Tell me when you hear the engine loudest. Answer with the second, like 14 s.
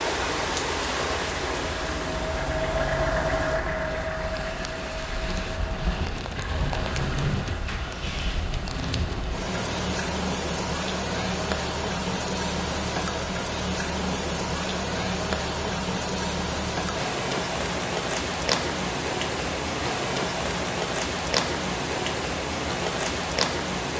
3 s.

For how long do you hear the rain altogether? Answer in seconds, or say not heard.
24 s.